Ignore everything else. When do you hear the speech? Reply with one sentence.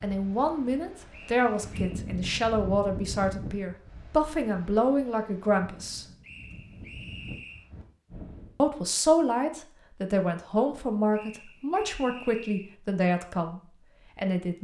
The speech can be heard from 0.0 to 6.0 s and from 8.6 to 14.5 s.